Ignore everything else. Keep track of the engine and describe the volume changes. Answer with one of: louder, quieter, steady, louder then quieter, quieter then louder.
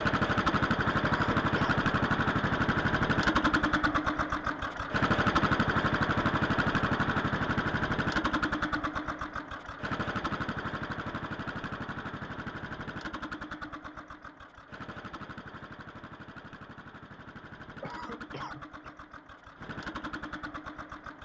quieter.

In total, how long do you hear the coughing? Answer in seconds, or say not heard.
2 s.